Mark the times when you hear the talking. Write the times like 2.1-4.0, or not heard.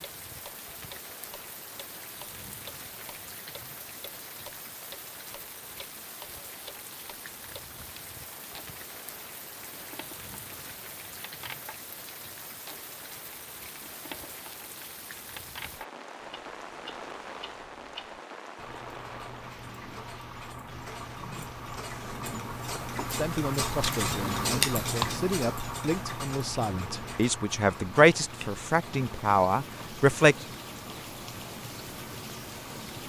23.1-30.4.